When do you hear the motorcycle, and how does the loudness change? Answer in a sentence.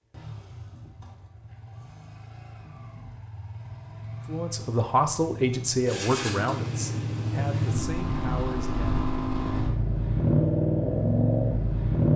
The motorcycle can be heard from 0.0 to 12.1 s, getting louder.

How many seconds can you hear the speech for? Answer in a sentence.
The speech can be heard for 5 seconds in total.